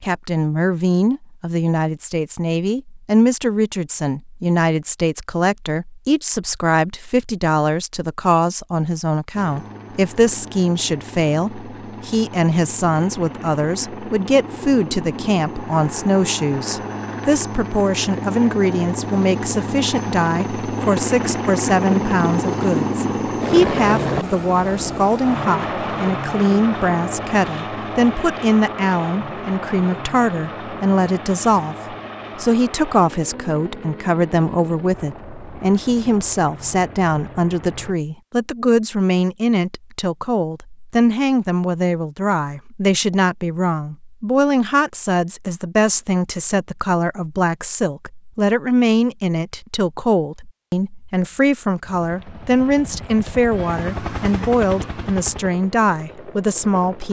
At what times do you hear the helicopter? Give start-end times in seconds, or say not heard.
9.3-38.0, 51.9-57.0.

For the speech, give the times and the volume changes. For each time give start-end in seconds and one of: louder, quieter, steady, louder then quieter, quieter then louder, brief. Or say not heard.
0.0-57.0 steady.